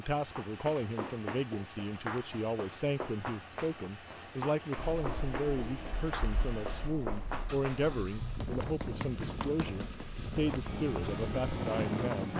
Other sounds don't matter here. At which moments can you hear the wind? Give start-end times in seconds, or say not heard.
4.8-12.3.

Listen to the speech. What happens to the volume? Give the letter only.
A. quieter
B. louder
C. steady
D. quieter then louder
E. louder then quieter
C.